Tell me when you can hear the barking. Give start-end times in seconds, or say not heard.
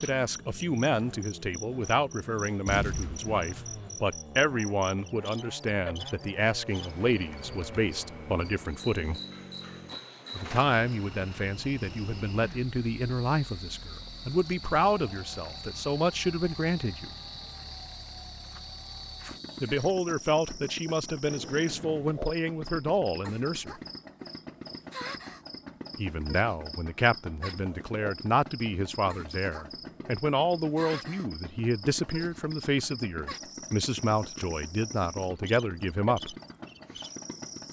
not heard.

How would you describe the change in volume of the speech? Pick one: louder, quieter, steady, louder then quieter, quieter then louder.
steady.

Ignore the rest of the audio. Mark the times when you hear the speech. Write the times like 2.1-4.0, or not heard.
0.0-9.2, 10.3-17.1, 19.6-23.8, 25.9-36.4.